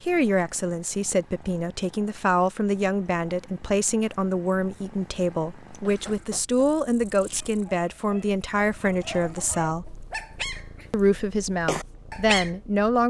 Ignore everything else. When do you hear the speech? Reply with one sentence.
The speech can be heard from 0.0 to 10.1 s and from 10.9 to 13.0 s.